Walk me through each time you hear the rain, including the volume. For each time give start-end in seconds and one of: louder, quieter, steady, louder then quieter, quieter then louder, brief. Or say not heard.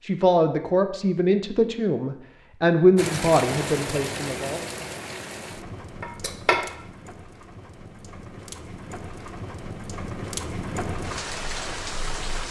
3.0-12.4 quieter then louder.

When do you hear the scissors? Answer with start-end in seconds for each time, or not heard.
6.0-6.7.